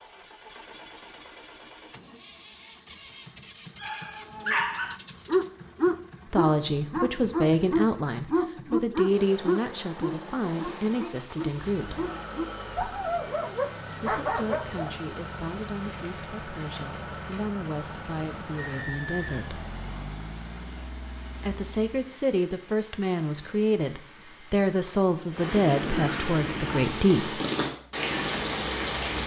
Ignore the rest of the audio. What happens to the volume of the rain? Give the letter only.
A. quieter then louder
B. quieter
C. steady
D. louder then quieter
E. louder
E.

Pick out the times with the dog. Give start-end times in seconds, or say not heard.
3.8-14.9.